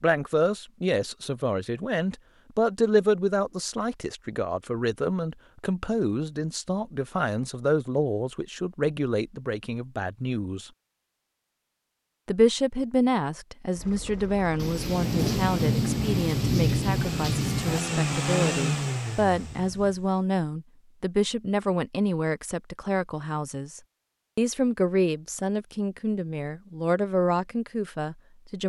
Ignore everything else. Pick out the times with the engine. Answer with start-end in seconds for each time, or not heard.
13.7-20.2.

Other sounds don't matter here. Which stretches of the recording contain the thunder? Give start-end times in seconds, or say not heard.
14.6-17.9.